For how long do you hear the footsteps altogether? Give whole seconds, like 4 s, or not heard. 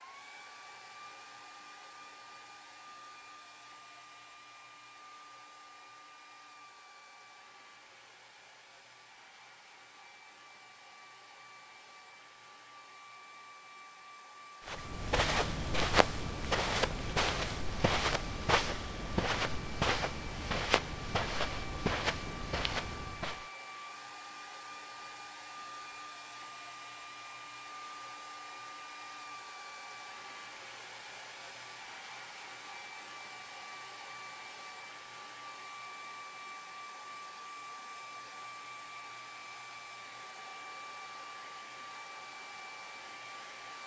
9 s.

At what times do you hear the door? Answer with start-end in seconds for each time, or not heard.
not heard.